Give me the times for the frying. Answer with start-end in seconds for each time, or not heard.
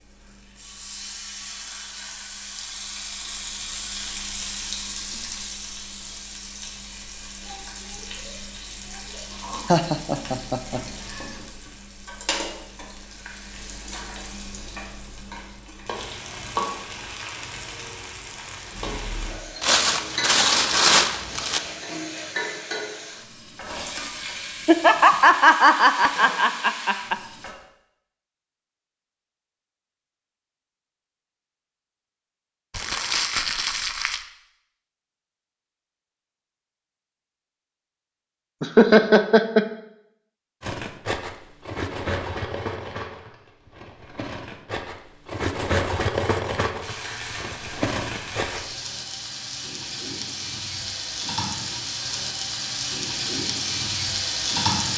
0.0-27.6, 46.8-54.9.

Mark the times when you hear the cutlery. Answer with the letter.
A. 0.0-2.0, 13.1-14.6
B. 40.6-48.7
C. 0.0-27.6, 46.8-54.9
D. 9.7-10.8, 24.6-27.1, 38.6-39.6
B.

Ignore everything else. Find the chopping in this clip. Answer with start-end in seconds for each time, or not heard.
not heard.